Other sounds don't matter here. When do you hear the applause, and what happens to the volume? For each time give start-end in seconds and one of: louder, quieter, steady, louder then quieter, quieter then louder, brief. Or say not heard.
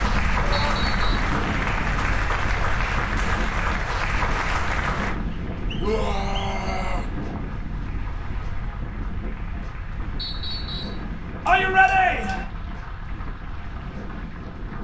0.0-14.8 quieter.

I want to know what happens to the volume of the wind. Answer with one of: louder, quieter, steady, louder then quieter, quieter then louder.
quieter.